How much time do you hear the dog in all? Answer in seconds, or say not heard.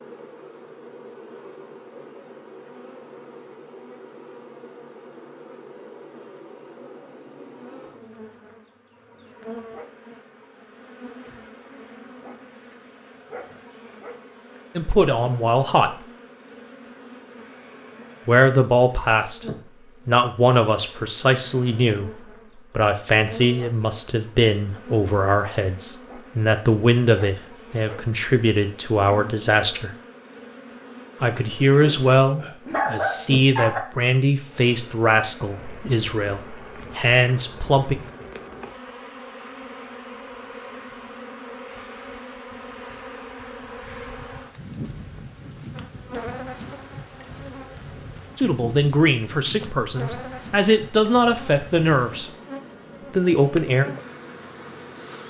2 s.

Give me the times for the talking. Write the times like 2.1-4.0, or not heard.
14.8-16.1, 18.2-29.9, 31.2-38.0, 48.4-52.3, 53.1-53.9.